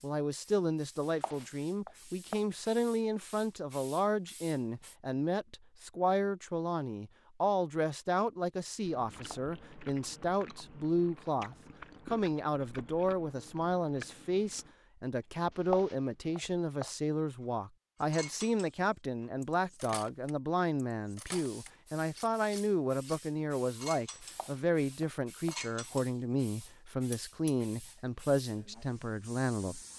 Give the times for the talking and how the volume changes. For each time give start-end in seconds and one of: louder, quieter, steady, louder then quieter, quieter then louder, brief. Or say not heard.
0.0-29.8 steady.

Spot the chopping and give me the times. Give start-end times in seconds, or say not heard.
1.1-2.4, 15.7-16.9, 24.3-25.6.